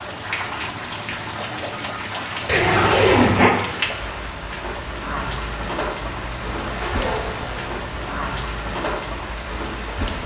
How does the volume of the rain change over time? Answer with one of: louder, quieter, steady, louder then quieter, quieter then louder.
steady.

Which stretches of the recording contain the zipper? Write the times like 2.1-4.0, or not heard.
2.5-3.5, 6.0-8.2.